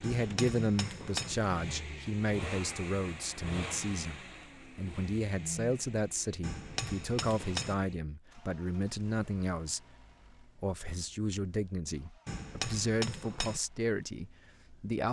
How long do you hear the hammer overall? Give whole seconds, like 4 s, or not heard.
4 s.